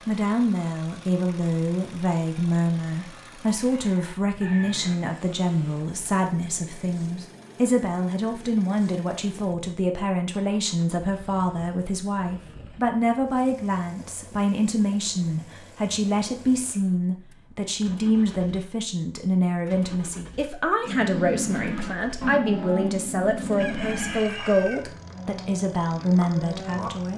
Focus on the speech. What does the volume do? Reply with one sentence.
The loudness of the speech stays about the same.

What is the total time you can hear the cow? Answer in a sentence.
The cow can be heard for 6 seconds in total.